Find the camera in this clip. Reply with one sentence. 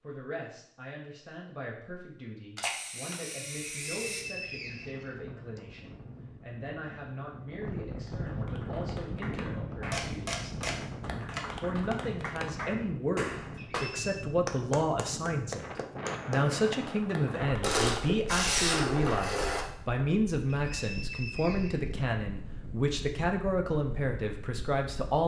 The camera can be heard from 2.5 to 4.2 s, from 9.9 to 11.4 s and from 17.6 to 19.6 s.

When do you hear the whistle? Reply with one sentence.
The whistle can be heard from 3.9 to 5.6 s, from 13.6 to 14.2 s and from 20.4 to 21.9 s.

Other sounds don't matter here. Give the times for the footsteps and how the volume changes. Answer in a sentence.
The footsteps can't be heard in this clip.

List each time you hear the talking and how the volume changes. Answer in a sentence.
You can hear the talking from 0.0 to 10.6 s, at a steady volume; and from 11.6 to 25.2 s, at a steady volume.